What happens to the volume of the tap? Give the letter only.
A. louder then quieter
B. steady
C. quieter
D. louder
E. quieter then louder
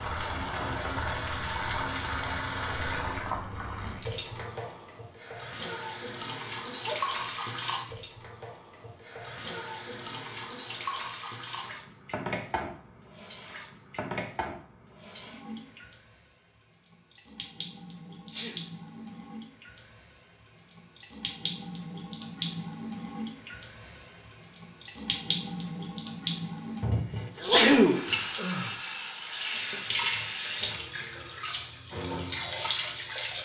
E.